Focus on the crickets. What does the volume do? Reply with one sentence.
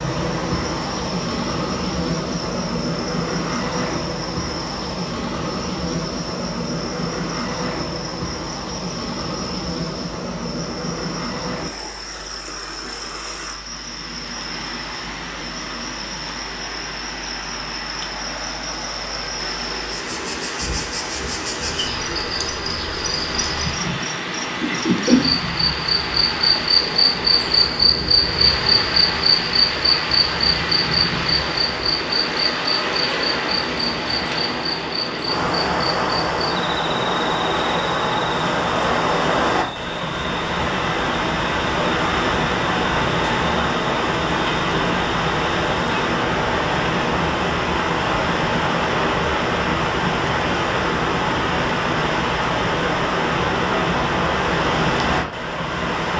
The volume of the crickets goes up, then down.